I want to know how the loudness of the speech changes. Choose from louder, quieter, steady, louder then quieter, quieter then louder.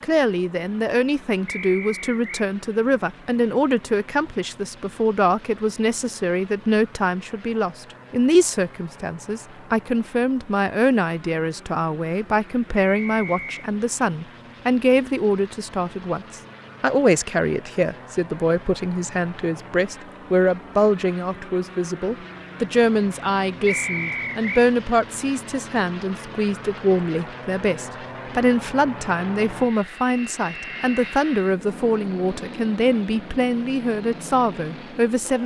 steady.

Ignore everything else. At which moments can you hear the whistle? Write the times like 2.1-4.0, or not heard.
1.4-2.2, 12.8-13.7, 23.6-24.6.